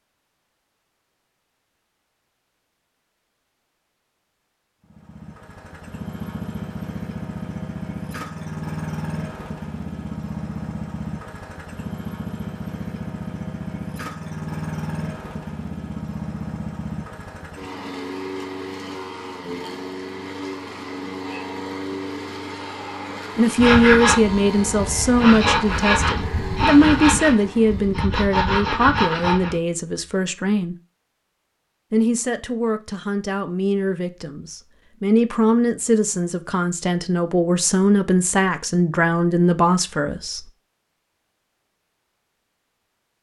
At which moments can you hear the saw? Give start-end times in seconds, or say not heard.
23.6-29.6.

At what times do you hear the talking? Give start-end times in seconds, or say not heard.
23.4-30.8, 31.9-40.5.